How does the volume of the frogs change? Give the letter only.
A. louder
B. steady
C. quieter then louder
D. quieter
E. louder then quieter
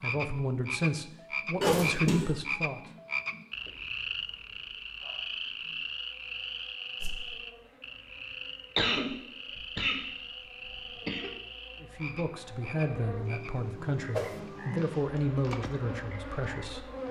D.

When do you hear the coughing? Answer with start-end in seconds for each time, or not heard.
1.6-2.3, 8.8-10.1, 10.7-11.3.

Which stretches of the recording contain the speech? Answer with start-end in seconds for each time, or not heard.
0.0-2.8, 11.8-16.9.